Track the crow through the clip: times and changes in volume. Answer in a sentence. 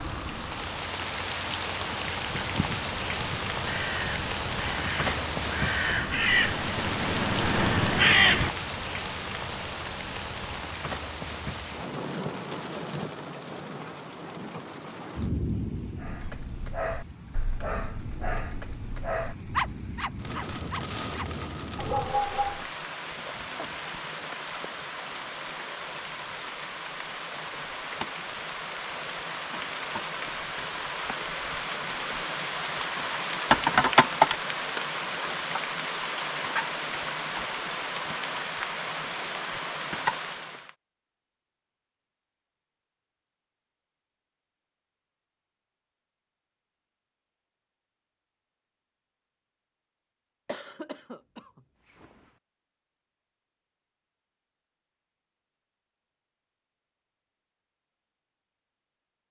The crow can be heard from 2.3 to 8.5 s, getting louder.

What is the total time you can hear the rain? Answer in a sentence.
You can hear the rain for 41 seconds altogether.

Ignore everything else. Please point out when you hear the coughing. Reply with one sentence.
The coughing can be heard from 23.1 to 23.9 s and from 50.5 to 52.3 s.